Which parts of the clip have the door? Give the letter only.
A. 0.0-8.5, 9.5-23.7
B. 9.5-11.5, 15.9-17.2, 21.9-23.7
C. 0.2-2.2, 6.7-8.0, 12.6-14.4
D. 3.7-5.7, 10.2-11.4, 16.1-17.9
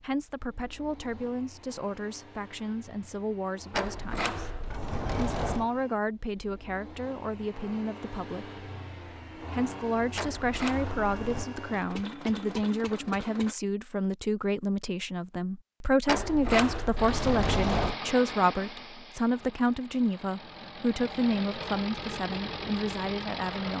D.